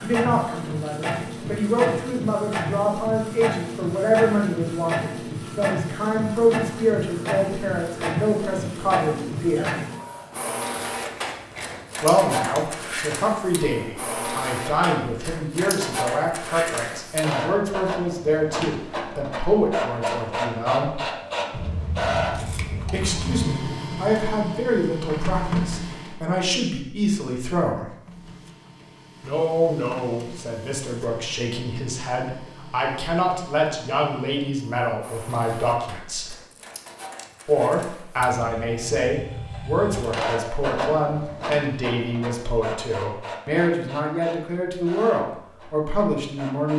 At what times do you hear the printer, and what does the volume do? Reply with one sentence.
You can hear the printer from 0.0 to 26.2 s, at a steady volume; and from 28.1 to 46.7 s, getting louder then quieter.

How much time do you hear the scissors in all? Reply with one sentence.
The scissors can be heard for 4 seconds in total.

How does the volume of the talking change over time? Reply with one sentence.
The volume of the talking stays about the same.